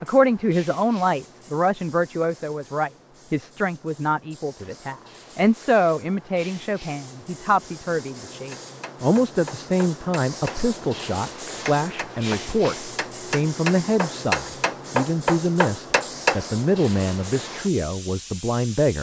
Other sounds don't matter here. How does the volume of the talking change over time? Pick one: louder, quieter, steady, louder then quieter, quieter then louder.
steady.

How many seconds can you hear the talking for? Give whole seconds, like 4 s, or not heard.
19 s.